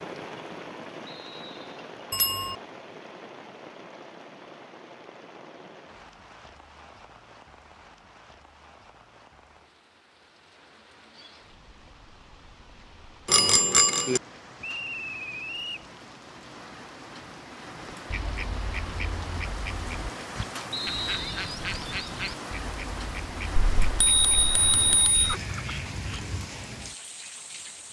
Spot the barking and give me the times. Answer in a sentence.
The barking can't be heard in this clip.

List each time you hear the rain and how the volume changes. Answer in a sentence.
You can hear the rain from 0.0 to 27.8 s, getting quieter then louder.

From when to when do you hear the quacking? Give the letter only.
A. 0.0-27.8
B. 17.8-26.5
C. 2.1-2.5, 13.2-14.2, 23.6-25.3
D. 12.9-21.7
B.